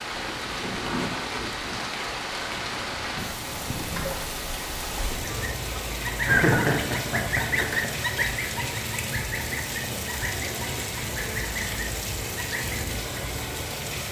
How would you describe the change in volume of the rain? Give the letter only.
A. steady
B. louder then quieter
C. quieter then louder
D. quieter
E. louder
A.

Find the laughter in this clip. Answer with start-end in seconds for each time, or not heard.
6.2-8.0.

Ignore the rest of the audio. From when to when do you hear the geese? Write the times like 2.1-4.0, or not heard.
5.3-12.8.